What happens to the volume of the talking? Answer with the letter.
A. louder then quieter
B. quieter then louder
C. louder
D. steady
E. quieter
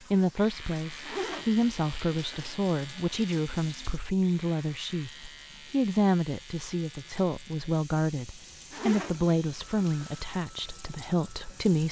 D.